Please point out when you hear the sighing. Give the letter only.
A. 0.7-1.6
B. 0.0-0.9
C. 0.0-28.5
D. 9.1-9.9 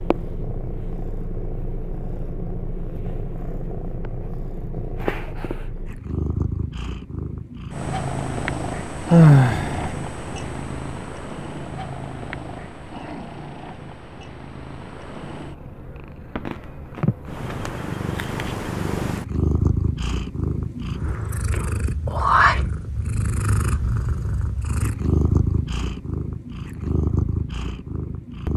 D.